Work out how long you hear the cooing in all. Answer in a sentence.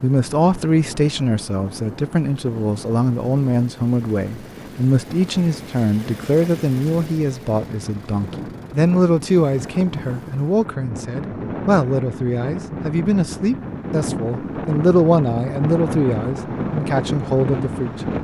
The cooing can't be heard in this clip.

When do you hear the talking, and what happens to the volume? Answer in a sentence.
You can hear the talking from 0.0 to 17.9 s, at a steady volume.